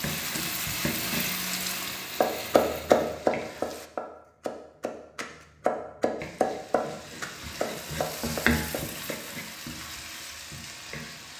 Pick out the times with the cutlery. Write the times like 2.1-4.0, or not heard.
not heard.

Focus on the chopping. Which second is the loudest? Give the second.
3 s.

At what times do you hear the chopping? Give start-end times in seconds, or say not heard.
2.1-9.2.